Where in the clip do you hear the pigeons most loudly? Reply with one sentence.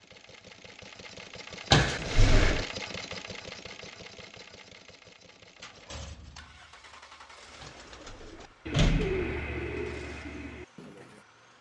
The loudest moment of the pigeons is at 9 seconds.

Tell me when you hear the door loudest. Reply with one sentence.
The volume of the door peaks at 2 seconds.